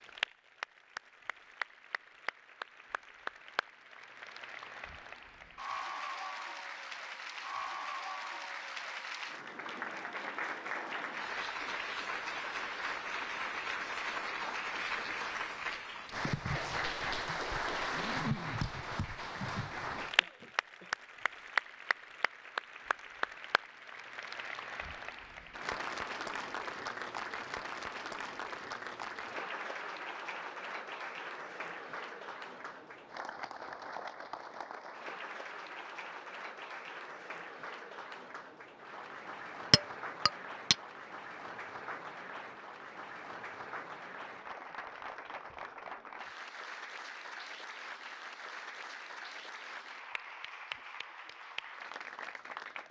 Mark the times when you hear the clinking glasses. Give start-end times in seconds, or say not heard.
39.7-40.8.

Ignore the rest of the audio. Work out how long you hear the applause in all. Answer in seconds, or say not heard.
53 s.